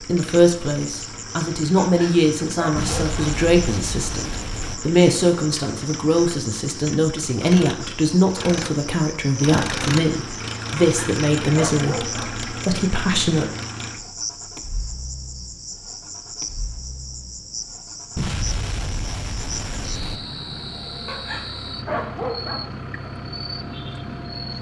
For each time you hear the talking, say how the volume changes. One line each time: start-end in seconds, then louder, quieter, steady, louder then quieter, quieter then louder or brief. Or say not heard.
0.0-13.5 steady.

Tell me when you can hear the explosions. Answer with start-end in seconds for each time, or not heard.
2.8-4.8, 18.1-20.2.